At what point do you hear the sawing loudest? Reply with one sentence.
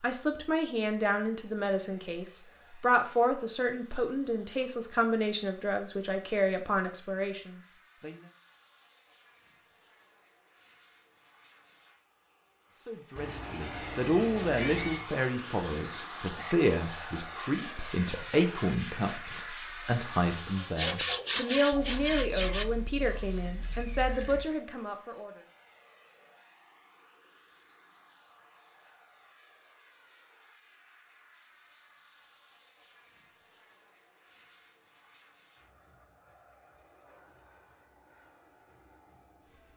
The loudest moment of the sawing is at 21 seconds.